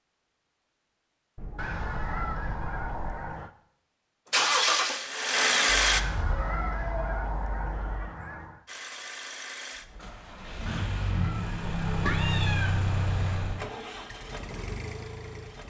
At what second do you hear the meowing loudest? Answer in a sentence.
The loudest moment of the meowing is at 12 seconds.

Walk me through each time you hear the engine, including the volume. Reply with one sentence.
You can hear the engine briefly from 4.3 to 6.0 s; and from 8.7 to 15.6 s, getting louder then quieter.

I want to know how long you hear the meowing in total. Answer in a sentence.
The meowing can be heard for 6 seconds in total.